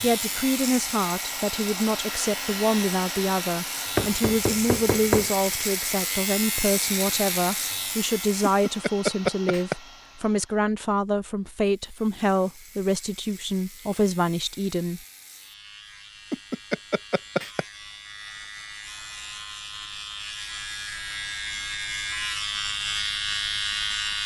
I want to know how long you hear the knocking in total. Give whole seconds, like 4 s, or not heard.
4 s.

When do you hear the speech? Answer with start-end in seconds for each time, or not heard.
0.0-15.0.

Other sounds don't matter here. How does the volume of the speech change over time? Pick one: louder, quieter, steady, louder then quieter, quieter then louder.
steady.